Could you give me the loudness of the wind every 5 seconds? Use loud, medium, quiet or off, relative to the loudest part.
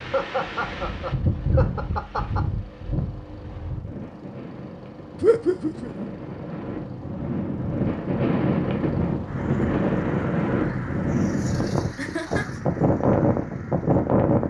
medium, loud, loud.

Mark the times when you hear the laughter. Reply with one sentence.
You can hear the laughter from 0.0 to 2.5 s, from 5.2 to 6.0 s and from 11.9 to 12.4 s.